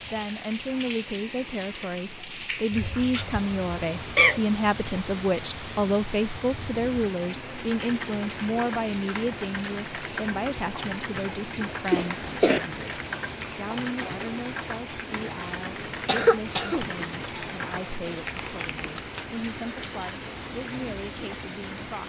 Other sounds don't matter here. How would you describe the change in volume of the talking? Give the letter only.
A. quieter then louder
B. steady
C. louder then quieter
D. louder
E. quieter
E.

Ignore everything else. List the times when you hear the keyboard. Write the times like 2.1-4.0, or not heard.
7.7-19.1.